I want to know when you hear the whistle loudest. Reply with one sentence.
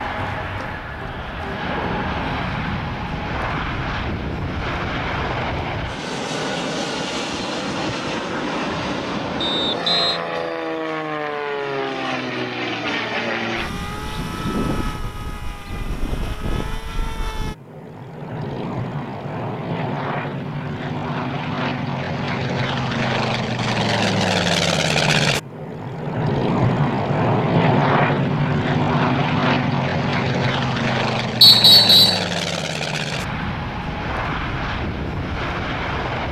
The volume of the whistle peaks at 32 seconds.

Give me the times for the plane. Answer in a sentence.
You can hear the plane from 0.0 to 36.2 s.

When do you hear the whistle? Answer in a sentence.
You can hear the whistle from 9.4 to 10.2 s and from 31.4 to 32.2 s.